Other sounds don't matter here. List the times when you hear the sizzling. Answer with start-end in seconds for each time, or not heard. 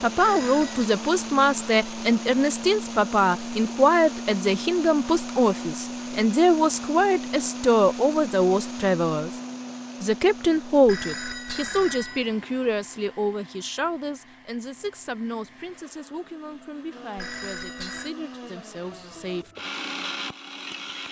not heard.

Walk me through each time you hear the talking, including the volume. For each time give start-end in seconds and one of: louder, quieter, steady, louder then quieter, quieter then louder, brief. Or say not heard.
0.0-9.3 steady
10.0-19.5 quieter.